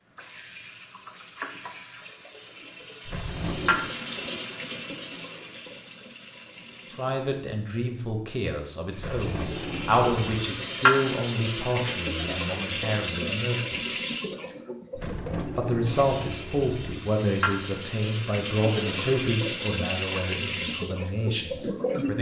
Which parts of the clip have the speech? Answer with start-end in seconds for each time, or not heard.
7.0-14.0, 15.6-22.1.